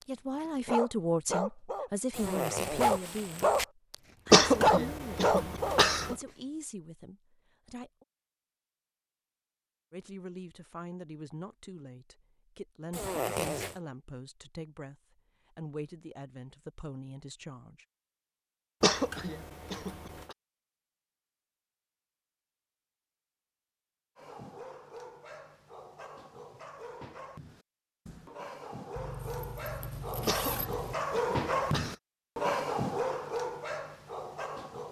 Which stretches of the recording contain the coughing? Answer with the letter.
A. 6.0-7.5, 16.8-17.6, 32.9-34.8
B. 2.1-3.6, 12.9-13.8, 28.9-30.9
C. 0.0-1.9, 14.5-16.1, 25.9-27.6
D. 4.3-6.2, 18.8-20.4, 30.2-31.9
D.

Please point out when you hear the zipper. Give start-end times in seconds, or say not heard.
2.1-3.6, 12.9-13.8, 28.9-30.9.